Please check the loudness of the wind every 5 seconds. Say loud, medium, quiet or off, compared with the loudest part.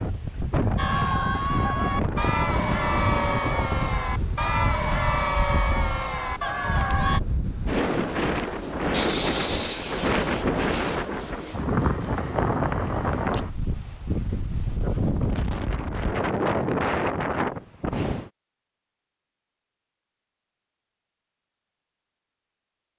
loud, loud, loud, loud, off.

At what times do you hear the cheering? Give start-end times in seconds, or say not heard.
0.8-7.2.